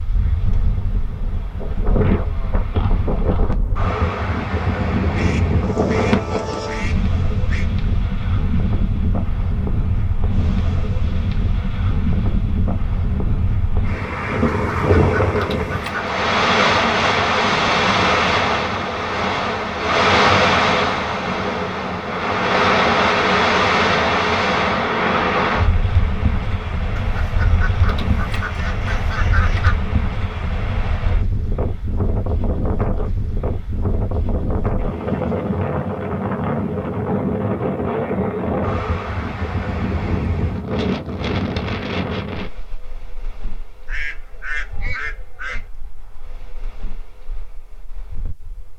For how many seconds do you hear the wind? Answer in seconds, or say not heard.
49 s.